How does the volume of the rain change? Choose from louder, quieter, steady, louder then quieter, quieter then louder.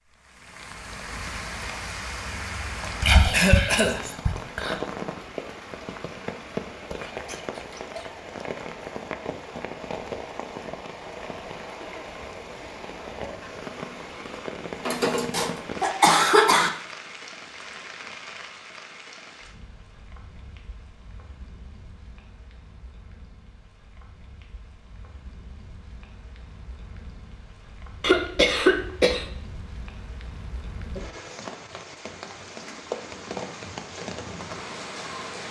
quieter then louder.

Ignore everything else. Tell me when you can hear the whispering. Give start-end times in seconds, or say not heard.
2.8-4.8.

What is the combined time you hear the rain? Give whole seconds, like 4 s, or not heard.
35 s.